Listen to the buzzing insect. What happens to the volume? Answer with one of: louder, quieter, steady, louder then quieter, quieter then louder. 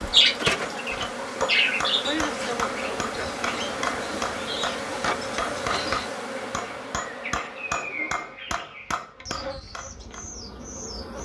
quieter.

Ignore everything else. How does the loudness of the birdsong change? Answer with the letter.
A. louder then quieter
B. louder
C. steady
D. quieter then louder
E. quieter
E.